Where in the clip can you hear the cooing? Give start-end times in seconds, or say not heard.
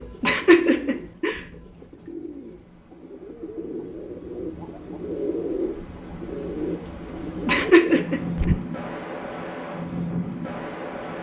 0.0-8.6.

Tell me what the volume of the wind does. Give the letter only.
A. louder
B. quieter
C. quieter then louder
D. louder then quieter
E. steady
A.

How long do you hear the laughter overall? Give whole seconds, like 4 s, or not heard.
2 s.